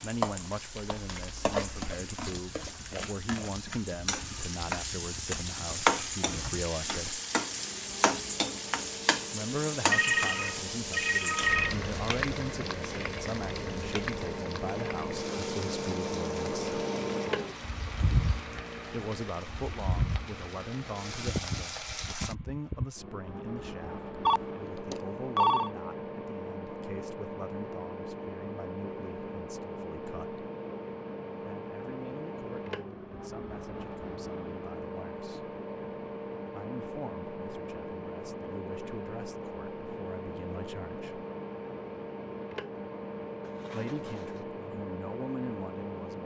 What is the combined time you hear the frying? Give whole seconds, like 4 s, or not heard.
22 s.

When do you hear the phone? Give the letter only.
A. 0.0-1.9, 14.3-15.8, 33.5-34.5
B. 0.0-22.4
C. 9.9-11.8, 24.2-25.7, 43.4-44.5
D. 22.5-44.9
C.